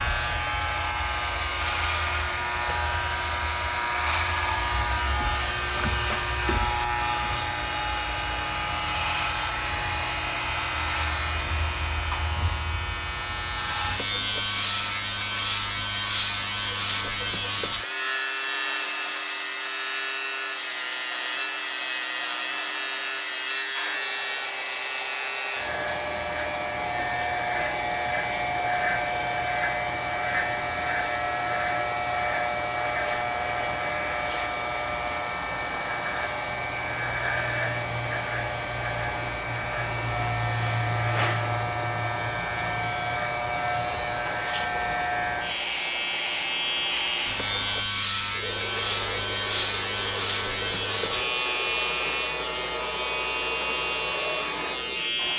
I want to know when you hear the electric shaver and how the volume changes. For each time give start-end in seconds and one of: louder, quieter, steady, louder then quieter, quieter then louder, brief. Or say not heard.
0.0-55.3 steady.